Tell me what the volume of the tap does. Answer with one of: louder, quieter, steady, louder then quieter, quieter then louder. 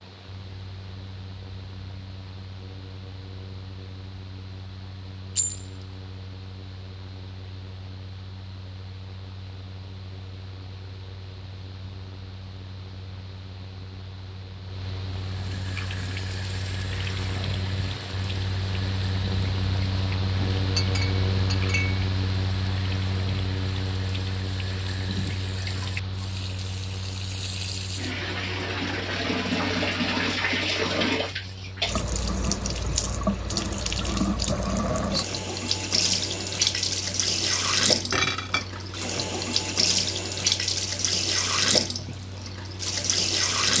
louder.